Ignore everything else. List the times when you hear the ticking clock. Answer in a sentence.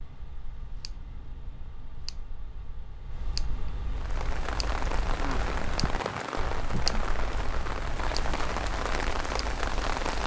You can hear the ticking clock from 0.0 to 10.2 s.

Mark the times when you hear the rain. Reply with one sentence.
You can hear the rain from 3.9 to 10.2 s.